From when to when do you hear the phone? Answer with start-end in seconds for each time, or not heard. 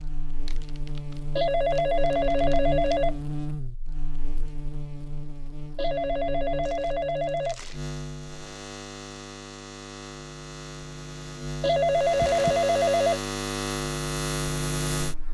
1.4-3.1, 5.8-7.6, 11.6-13.2.